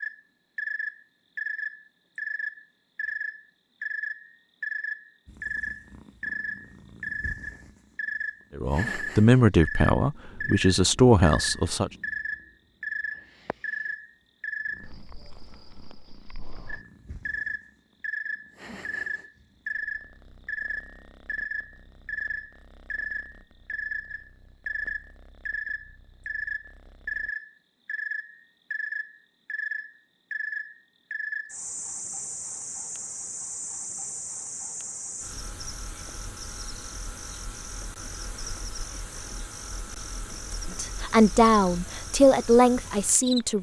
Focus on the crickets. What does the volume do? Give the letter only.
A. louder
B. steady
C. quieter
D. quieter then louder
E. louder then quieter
C.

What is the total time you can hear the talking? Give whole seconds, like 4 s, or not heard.
6 s.